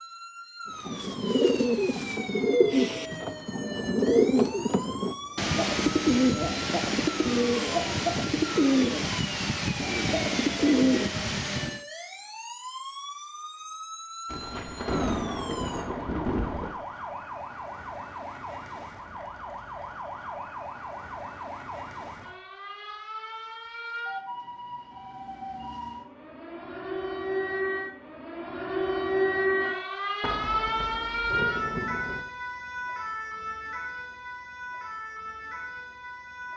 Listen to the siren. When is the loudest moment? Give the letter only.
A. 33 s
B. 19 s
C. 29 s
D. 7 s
C.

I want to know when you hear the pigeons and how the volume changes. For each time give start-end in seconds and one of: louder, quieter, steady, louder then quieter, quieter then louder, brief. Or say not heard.
0.8-11.8 steady.